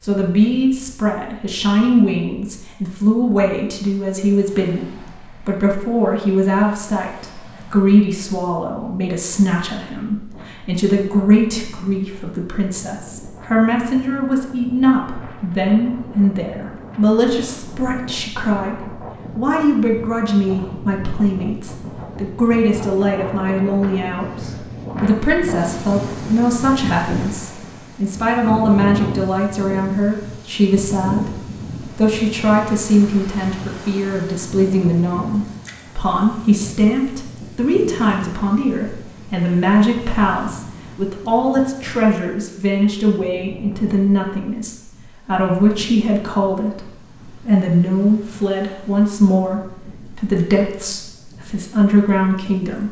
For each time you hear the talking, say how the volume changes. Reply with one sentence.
The talking can be heard from 0.0 to 52.8 s, at a steady volume.